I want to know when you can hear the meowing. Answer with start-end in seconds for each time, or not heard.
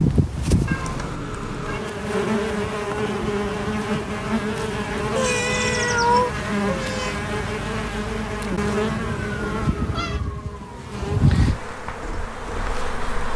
0.7-1.8, 5.2-7.2, 9.4-10.2.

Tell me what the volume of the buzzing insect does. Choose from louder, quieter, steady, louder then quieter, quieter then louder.
steady.